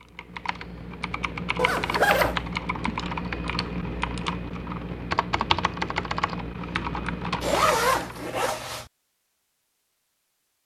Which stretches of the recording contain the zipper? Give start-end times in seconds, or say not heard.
1.6-2.4, 7.4-8.8.